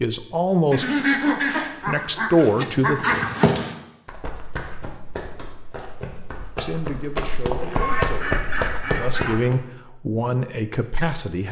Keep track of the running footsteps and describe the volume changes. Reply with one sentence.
The volume of the running footsteps goes down, then up.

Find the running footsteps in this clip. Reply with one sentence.
The running footsteps can be heard from 3.0 to 9.6 s.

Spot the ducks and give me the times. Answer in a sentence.
The ducks can be heard from 0.7 to 3.5 s and from 7.6 to 9.4 s.